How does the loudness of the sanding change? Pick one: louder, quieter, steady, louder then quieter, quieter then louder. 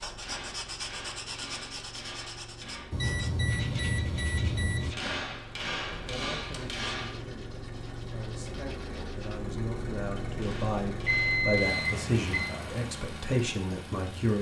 quieter.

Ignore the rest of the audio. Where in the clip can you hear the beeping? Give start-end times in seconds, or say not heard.
2.9-4.9, 11.1-12.6.